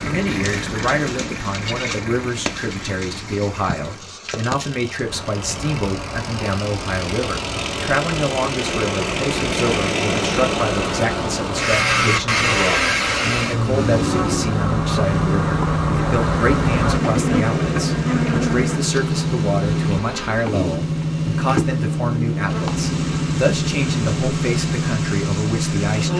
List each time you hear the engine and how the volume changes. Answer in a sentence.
The engine can be heard from 0.0 to 26.1 s, getting louder.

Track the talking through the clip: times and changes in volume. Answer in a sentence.
The talking can be heard from 0.1 to 26.1 s, at a steady volume.